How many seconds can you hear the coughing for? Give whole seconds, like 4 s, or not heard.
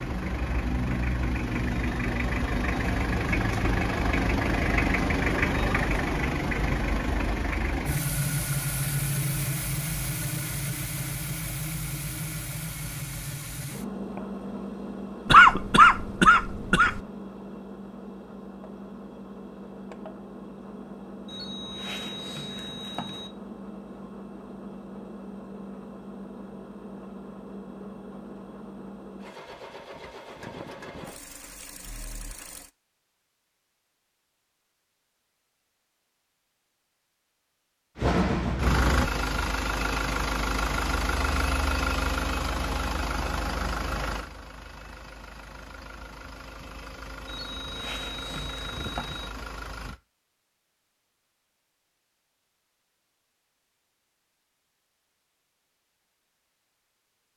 2 s.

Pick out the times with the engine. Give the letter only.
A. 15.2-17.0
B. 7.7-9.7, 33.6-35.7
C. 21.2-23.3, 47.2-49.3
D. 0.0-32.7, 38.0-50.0
D.